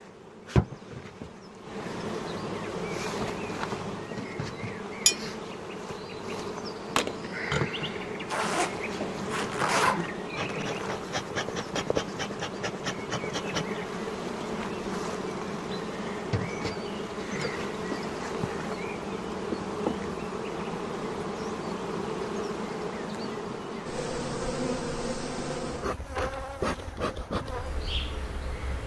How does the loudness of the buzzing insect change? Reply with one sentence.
The volume of the buzzing insect stays about the same.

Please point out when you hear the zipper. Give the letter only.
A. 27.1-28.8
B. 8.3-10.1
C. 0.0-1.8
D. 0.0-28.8
B.